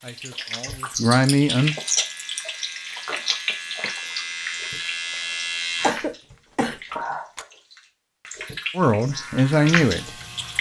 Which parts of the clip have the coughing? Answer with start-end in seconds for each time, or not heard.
5.8-7.5.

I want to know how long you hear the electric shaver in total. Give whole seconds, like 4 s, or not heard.
6 s.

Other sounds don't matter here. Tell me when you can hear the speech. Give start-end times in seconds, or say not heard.
0.0-1.8, 8.8-10.1.